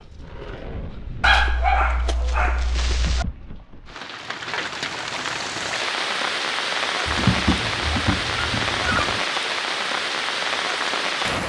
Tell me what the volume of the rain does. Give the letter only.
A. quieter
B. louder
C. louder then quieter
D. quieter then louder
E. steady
B.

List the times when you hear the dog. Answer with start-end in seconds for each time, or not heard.
1.2-3.2, 7.0-9.2.